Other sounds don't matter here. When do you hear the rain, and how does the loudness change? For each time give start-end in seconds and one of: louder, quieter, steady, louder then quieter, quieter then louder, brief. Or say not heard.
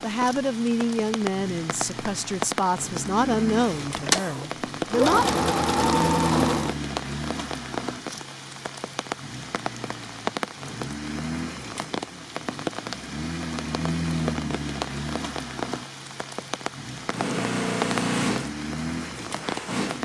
0.0-19.9 steady.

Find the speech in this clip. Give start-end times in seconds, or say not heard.
0.0-5.3.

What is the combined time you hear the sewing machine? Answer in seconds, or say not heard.
6 s.